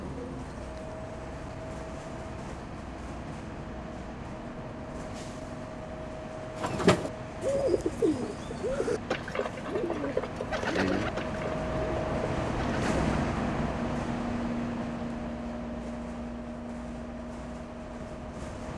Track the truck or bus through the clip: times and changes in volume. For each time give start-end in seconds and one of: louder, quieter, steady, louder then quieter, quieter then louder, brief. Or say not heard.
0.0-18.7 louder then quieter.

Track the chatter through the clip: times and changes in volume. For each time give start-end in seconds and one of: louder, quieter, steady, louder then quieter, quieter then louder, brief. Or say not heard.
not heard.